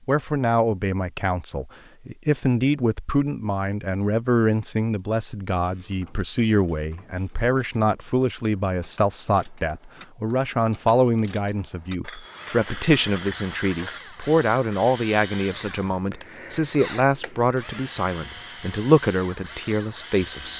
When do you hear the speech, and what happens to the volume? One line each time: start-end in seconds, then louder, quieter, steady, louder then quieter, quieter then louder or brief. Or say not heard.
0.1-20.5 steady.